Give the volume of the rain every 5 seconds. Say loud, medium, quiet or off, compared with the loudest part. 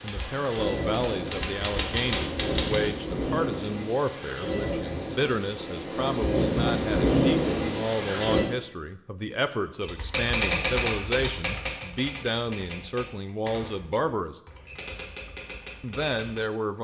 medium, loud, off, off.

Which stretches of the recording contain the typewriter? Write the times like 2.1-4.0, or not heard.
0.0-2.9, 9.8-16.4.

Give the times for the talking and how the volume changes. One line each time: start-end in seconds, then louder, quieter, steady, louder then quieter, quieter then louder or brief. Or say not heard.
0.0-14.4 steady
15.8-16.7 brief.